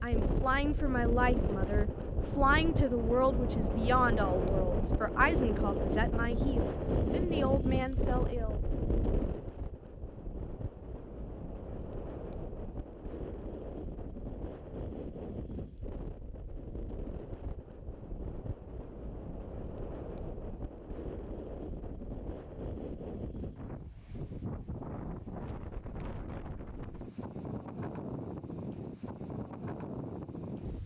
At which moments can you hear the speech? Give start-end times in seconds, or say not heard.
0.0-8.6.